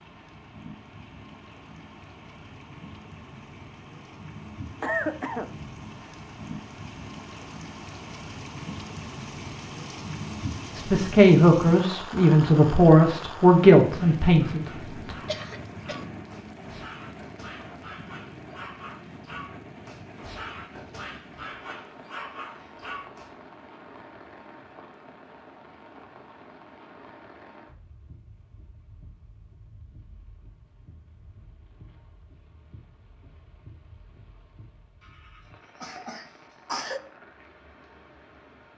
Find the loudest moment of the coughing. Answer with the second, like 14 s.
5 s.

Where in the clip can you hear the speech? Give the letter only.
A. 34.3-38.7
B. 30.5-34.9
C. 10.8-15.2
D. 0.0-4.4
C.